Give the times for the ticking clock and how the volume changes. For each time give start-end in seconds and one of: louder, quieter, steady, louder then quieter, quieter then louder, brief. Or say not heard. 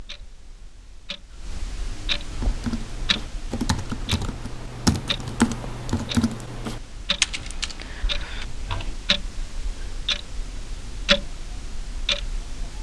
0.0-12.7 louder.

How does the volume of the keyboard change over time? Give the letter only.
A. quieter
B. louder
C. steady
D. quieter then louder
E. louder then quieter
E.